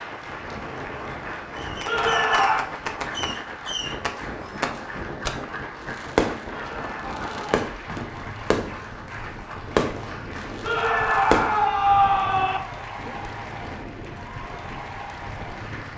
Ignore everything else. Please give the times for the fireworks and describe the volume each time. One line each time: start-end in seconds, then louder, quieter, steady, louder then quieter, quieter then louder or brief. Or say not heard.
1.6-11.7 steady.